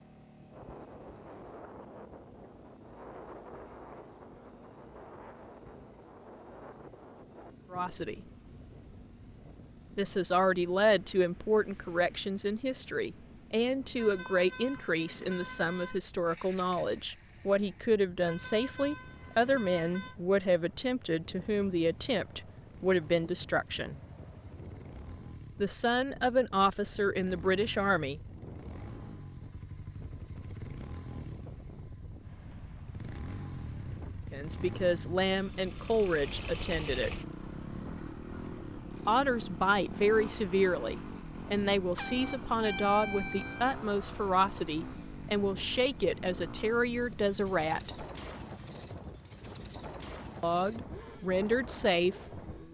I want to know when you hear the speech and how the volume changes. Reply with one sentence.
The speech can be heard briefly from 7.7 to 8.2 s; from 9.9 to 23.9 s, at a steady volume; briefly from 25.6 to 28.2 s; briefly from 34.3 to 37.1 s; from 39.0 to 48.0 s, at a steady volume; and briefly from 50.4 to 52.1 s.